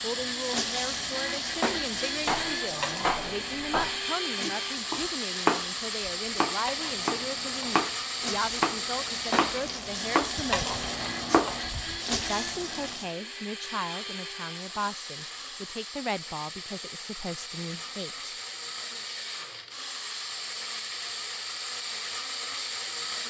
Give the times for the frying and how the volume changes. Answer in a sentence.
You can hear the frying from 0.0 to 13.1 s, getting quieter then louder.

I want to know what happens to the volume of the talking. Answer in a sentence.
The loudness of the talking stays about the same.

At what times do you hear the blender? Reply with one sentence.
You can hear the blender from 0.0 to 23.2 s.